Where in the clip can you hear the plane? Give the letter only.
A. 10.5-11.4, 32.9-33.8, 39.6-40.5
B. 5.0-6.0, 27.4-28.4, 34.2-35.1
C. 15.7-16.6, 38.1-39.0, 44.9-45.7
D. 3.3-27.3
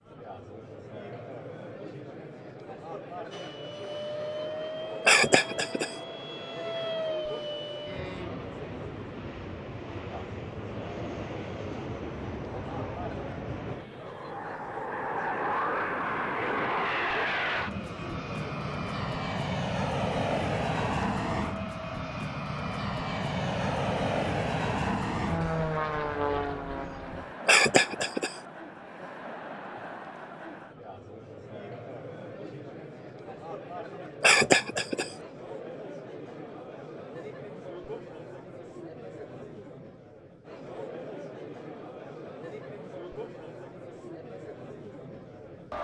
D.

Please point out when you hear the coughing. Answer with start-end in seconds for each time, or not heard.
5.0-6.0, 27.4-28.4, 34.2-35.1.